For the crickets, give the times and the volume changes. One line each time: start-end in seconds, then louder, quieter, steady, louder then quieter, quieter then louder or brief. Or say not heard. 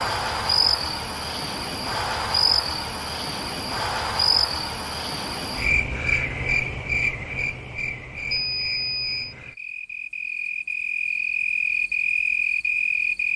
0.0-13.3 quieter then louder.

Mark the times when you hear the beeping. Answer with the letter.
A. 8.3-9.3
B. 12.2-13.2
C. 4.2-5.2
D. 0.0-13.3
A.